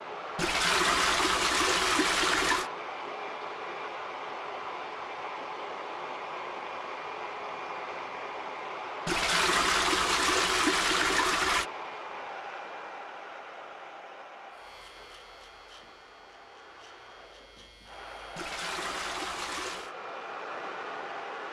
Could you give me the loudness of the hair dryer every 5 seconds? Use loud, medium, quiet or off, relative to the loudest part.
loud, loud, loud, medium, loud.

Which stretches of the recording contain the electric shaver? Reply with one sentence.
The electric shaver can be heard from 14.5 to 18.6 s.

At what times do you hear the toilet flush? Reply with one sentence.
The toilet flush can be heard from 0.3 to 2.7 s, from 9.1 to 11.7 s and from 18.4 to 19.9 s.